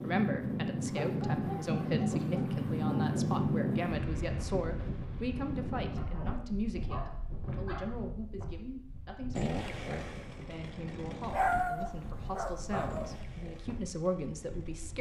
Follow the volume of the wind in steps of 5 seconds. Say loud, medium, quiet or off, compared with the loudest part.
loud, medium, quiet.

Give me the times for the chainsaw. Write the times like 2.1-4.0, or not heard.
9.3-14.9.